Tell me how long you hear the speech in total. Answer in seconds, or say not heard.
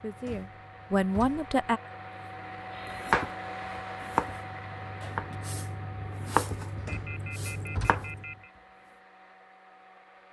2 s.